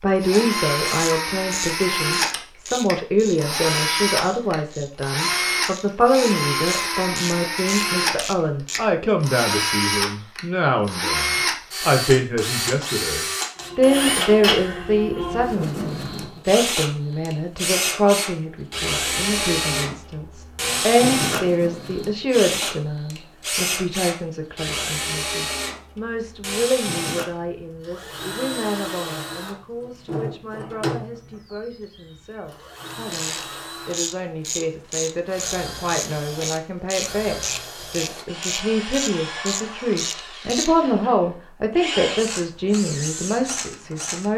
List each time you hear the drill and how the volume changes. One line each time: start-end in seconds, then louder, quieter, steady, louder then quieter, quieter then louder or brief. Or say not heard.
0.1-44.3 quieter.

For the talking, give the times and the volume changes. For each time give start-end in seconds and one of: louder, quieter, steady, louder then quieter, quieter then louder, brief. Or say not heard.
0.0-44.3 quieter then louder.